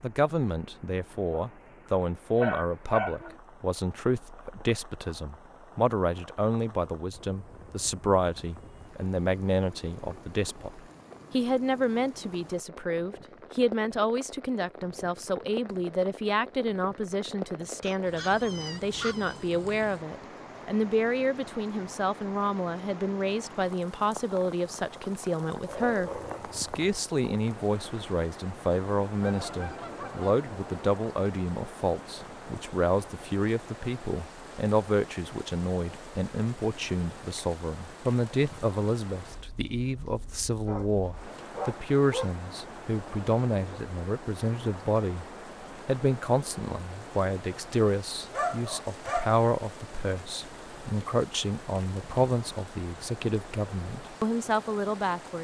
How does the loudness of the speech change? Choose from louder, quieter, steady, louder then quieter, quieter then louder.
steady.